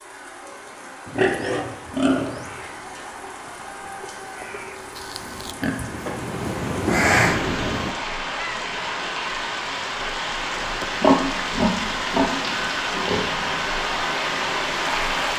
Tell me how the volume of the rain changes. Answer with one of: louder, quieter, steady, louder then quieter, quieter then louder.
louder.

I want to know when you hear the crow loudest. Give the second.
7 s.